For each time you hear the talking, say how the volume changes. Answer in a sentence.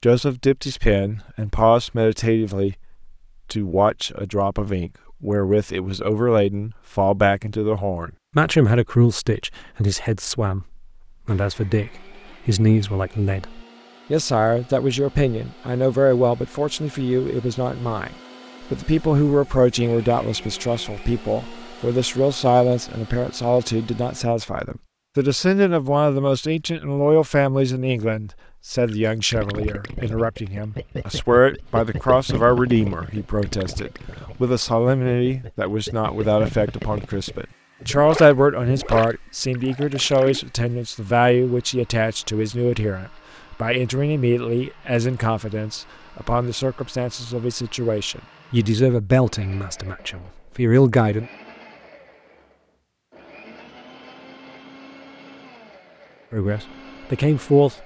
You can hear the talking from 0.0 to 51.2 s, at a steady volume; and briefly from 56.3 to 57.8 s.